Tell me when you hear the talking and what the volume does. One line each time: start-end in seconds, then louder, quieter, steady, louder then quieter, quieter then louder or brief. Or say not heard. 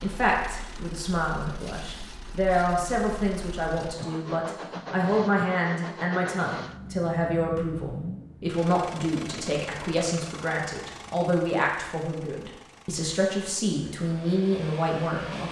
0.0-15.4 steady.